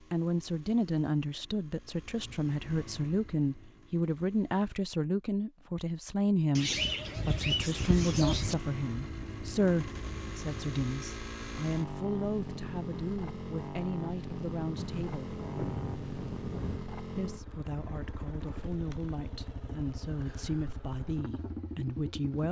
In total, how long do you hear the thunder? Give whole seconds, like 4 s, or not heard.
2 s.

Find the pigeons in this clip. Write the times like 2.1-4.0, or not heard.
6.5-8.6.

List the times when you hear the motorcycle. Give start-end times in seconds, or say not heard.
0.0-4.7, 7.5-22.4.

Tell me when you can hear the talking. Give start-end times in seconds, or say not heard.
0.1-15.3, 17.1-22.4.